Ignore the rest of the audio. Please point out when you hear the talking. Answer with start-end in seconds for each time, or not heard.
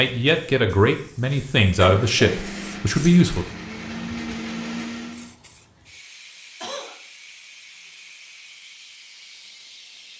0.0-3.5.